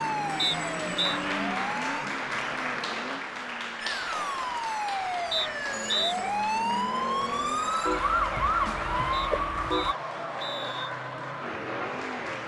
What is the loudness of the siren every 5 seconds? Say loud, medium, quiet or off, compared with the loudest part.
medium, loud, off.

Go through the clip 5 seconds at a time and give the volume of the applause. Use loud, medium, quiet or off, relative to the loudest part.
loud, medium, medium.